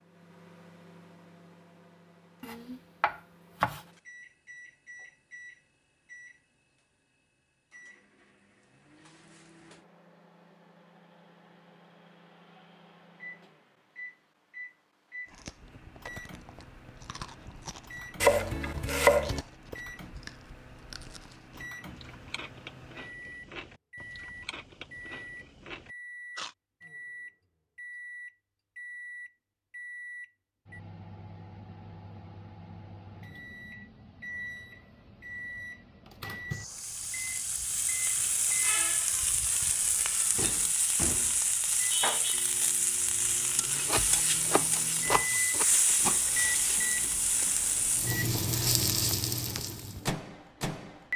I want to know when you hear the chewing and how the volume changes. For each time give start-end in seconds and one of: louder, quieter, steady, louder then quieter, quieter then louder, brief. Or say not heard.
15.2-26.6 steady.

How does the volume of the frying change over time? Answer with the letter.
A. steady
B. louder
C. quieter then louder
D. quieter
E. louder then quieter
A.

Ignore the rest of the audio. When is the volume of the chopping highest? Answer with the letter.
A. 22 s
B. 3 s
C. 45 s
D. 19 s
D.